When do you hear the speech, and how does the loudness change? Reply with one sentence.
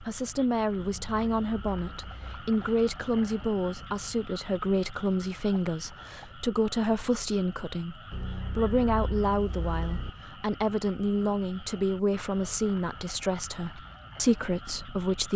You can hear the speech from 0.0 to 15.3 s, at a steady volume.